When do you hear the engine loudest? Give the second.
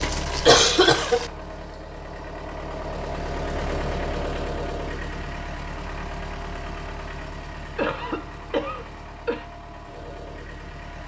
4 s.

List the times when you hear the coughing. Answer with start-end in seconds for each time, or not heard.
0.0-1.3, 7.8-9.4.